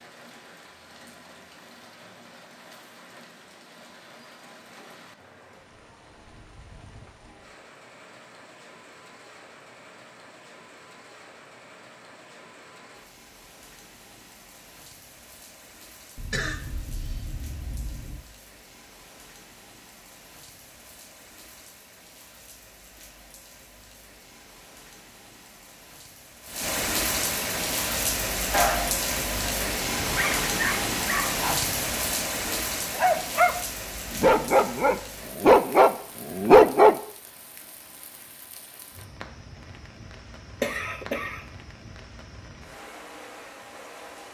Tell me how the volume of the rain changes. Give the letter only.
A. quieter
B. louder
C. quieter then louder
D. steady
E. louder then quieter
E.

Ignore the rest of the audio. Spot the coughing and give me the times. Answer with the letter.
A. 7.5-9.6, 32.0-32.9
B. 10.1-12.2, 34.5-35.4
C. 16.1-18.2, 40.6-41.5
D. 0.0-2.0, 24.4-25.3
C.